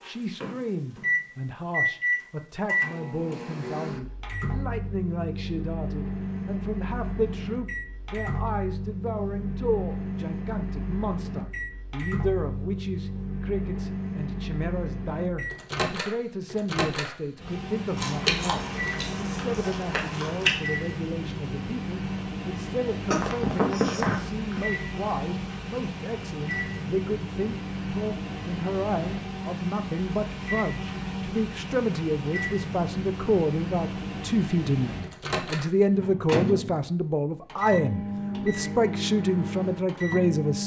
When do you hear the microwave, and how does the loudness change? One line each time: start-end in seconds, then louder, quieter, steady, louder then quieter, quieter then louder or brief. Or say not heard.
0.0-40.6 steady.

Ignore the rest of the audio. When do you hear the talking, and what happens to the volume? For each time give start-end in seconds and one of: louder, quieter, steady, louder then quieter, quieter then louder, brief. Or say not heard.
0.0-40.6 louder.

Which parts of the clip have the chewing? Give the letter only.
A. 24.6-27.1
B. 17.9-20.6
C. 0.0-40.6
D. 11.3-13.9
B.